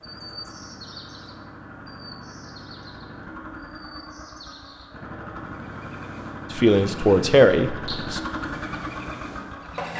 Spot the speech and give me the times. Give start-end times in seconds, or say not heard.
6.5-8.2.